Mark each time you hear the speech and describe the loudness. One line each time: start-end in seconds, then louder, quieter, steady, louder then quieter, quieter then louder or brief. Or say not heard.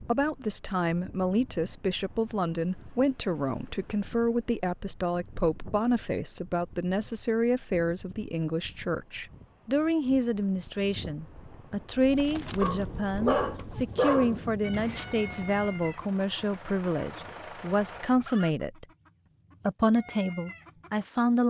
0.0-18.9 steady
19.6-21.4 brief.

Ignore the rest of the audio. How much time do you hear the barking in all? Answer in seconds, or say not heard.
3 s.